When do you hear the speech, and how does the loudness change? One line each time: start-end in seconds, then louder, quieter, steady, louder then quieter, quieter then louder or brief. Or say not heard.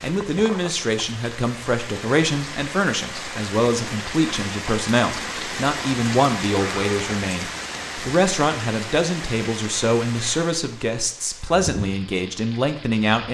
0.0-13.2 steady.